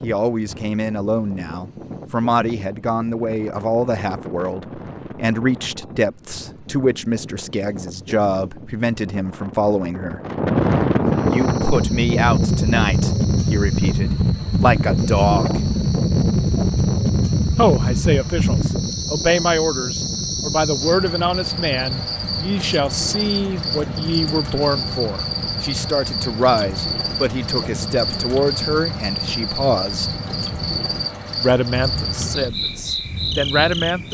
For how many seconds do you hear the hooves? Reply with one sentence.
You can't hear the hooves here.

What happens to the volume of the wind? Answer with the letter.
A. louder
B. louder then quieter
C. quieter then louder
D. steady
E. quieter
B.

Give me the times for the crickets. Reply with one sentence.
The crickets can be heard from 11.1 to 34.0 s.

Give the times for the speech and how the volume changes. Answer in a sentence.
You can hear the speech from 0.0 to 10.2 s, at a steady volume; from 11.3 to 15.6 s, getting quieter then louder; from 17.6 to 30.1 s, at a steady volume; and briefly from 31.3 to 34.0 s.